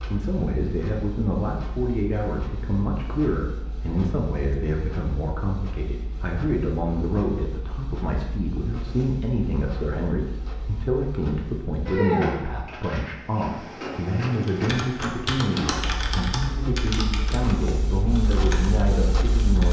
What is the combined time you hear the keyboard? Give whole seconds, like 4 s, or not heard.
5 s.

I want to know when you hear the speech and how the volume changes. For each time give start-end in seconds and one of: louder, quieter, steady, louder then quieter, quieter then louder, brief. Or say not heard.
0.1-19.6 steady.